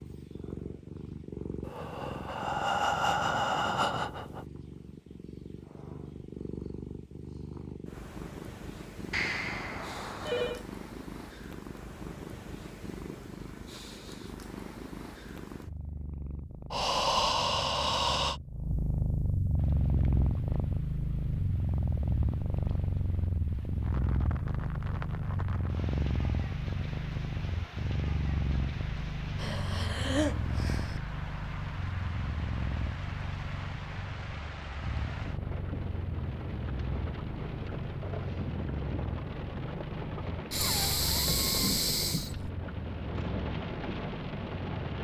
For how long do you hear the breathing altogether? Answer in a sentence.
The breathing can be heard for 8 seconds in total.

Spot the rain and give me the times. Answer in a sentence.
The rain can be heard from 19.6 to 44.9 s.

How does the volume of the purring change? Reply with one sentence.
The loudness of the purring goes up, then down.